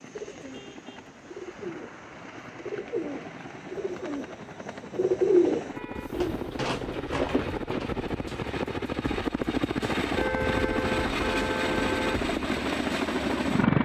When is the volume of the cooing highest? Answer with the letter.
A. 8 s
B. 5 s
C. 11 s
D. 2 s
B.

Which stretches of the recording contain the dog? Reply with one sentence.
You can't hear the dog here.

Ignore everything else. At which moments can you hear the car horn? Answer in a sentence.
The car horn can be heard from 0.5 to 2.5 s, from 5.8 to 6.2 s and from 10.2 to 12.2 s.